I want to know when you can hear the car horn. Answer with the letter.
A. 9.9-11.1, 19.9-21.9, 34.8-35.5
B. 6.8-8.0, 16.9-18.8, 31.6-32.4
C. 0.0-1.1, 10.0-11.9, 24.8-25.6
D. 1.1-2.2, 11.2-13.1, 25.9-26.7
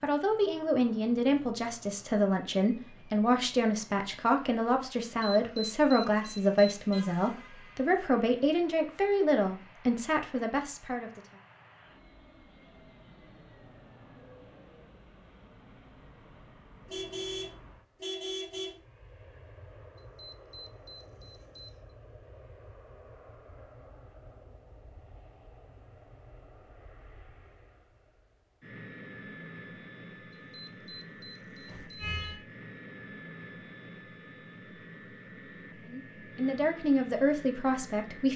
B.